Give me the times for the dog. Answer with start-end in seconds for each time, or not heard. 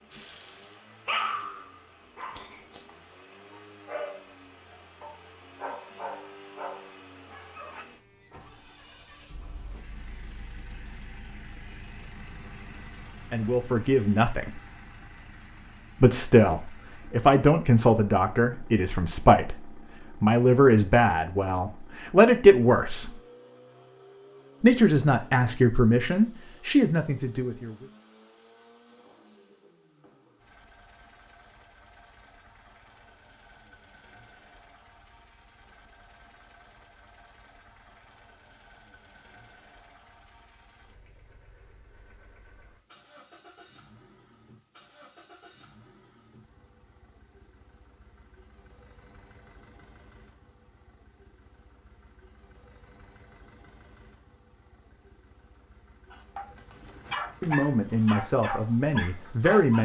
0.1-7.8, 56.1-59.8.